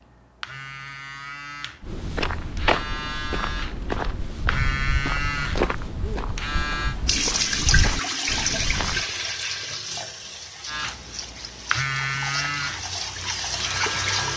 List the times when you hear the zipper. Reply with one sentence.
You can't hear the zipper here.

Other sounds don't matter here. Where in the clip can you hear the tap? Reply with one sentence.
You can hear the tap from 7.0 to 14.3 s.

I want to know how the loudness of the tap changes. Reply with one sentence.
The volume of the tap goes down, then up.